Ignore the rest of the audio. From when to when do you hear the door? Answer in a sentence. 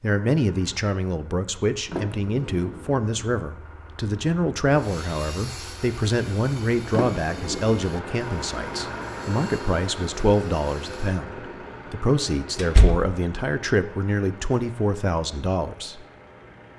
The door can be heard from 1.9 to 3.0 s, from 6.9 to 7.7 s and from 12.6 to 13.1 s.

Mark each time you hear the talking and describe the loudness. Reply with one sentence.
The talking can be heard from 0.0 to 16.1 s, at a steady volume.